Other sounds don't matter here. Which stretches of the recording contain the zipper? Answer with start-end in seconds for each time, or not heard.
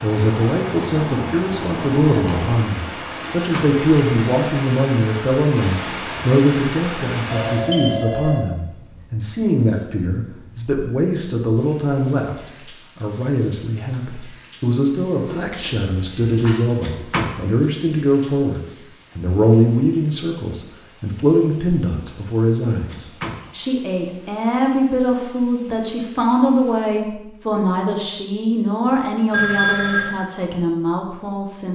not heard.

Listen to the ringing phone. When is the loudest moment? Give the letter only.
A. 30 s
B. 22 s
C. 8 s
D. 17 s
A.